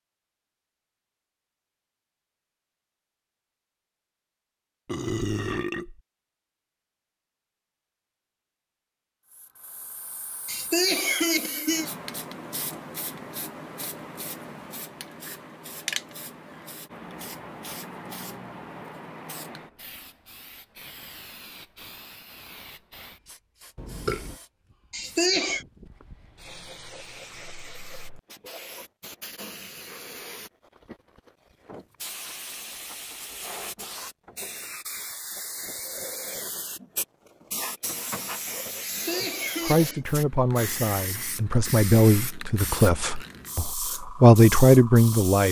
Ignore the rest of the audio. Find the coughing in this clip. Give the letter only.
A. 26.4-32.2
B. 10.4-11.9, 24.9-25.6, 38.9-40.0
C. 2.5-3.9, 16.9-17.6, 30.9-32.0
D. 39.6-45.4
B.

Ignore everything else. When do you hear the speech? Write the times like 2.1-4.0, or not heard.
39.6-45.4.